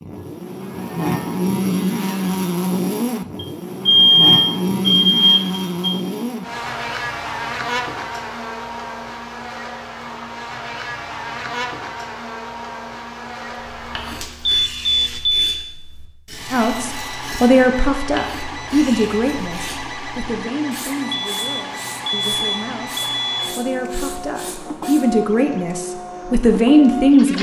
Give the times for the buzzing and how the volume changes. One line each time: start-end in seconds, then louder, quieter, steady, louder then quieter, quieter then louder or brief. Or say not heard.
0.0-15.2 quieter.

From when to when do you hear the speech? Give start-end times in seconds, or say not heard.
16.5-27.3.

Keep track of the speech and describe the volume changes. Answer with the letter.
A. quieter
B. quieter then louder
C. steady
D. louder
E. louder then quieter
B.